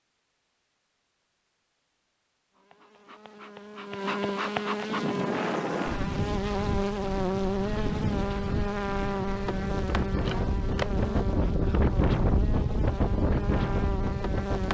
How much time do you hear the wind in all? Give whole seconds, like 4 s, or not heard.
10 s.